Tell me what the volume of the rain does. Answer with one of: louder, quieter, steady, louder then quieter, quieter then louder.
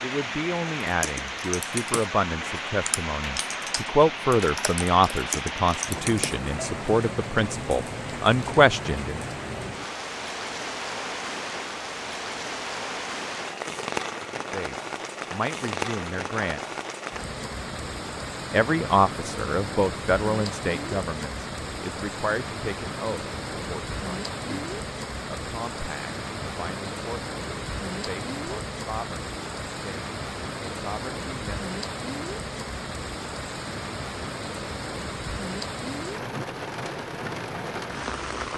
steady.